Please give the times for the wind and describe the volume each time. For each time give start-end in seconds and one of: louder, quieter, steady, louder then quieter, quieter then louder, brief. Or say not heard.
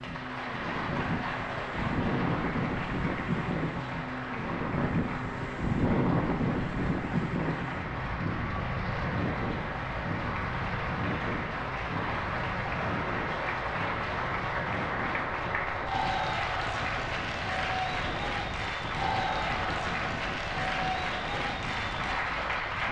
0.0-22.8 quieter.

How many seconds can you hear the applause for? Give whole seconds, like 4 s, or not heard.
23 s.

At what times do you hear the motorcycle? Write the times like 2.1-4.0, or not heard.
not heard.